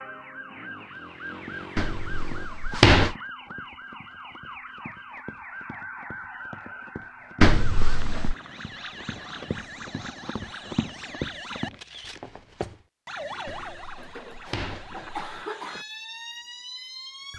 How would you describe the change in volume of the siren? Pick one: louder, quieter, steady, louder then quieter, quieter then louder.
steady.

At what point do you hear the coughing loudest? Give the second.
15 s.